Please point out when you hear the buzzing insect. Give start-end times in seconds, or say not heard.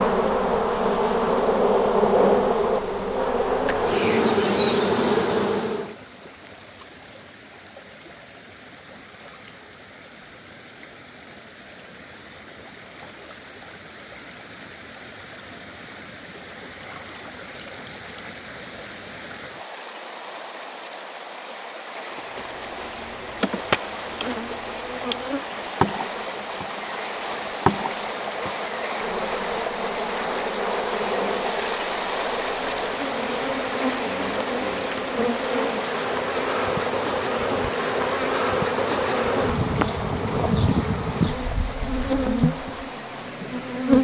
0.0-6.0, 22.1-44.0.